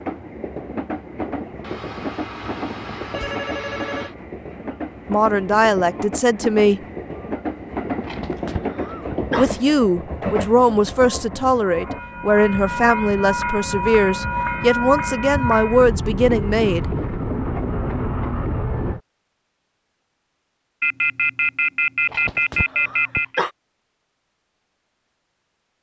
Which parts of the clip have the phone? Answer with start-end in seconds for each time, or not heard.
1.6-4.2, 20.8-23.4.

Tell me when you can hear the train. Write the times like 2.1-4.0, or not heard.
0.0-19.0.